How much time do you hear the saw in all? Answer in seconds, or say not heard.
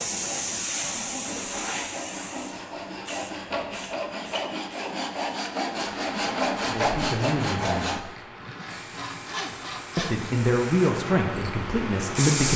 10 s.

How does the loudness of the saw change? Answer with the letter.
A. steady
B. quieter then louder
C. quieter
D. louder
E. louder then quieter
E.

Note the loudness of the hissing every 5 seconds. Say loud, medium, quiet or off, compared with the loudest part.
loud, medium, loud.